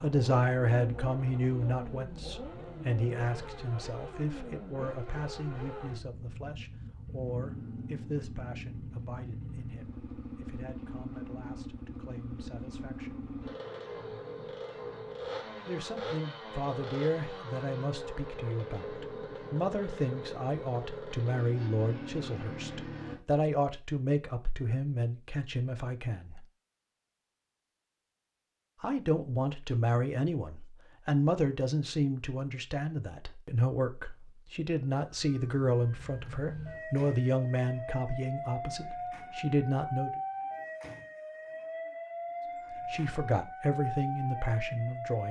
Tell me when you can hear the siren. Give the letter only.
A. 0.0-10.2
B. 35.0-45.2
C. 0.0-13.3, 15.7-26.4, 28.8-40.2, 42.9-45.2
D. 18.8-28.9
B.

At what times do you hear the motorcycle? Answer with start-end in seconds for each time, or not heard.
0.0-23.2.